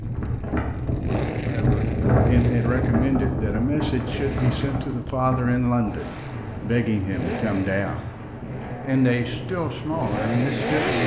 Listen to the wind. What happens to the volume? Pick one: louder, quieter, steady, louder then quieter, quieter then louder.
quieter.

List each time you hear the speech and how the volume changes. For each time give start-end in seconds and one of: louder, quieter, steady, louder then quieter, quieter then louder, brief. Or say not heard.
1.4-8.1 steady
8.8-11.0 brief.